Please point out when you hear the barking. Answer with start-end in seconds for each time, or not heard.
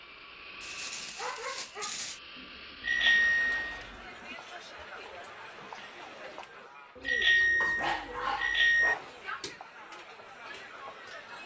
0.6-2.2, 7.6-9.6.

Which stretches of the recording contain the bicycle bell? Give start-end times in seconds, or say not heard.
2.8-3.9, 7.0-8.9.